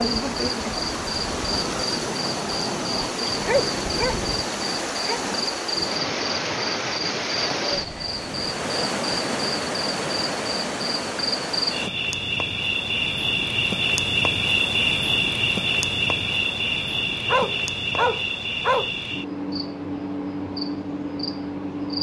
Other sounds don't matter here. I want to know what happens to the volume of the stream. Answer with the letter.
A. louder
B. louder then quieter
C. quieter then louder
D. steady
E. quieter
D.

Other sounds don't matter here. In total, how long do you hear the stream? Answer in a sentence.
The stream can be heard for 12 seconds in total.